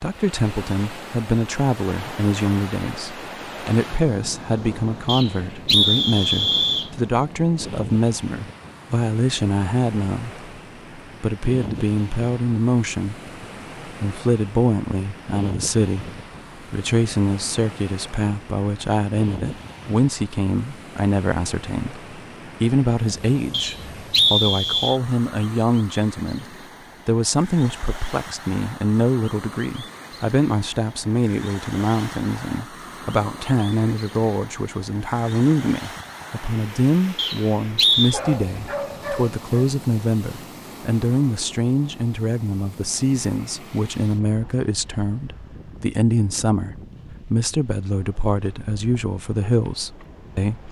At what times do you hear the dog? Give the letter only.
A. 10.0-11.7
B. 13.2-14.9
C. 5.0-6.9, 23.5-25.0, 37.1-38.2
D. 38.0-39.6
D.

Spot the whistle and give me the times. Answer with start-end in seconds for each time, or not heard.
5.0-6.9, 23.5-25.0, 37.1-38.2.